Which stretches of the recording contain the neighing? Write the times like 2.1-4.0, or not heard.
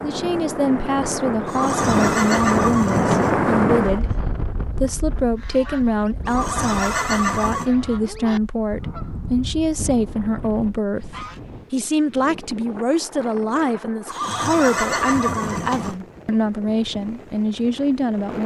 1.4-3.5, 6.2-7.7, 14.1-15.9.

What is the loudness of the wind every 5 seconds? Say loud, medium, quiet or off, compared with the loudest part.
loud, quiet, quiet, quiet.